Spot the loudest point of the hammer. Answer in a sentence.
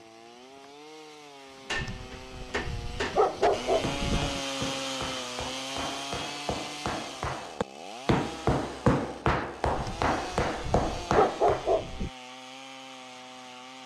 The volume of the hammer peaks at 9 seconds.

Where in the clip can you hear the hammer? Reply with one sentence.
You can hear the hammer from 1.7 to 11.7 s.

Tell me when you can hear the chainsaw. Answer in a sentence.
You can hear the chainsaw from 0.0 to 13.8 s.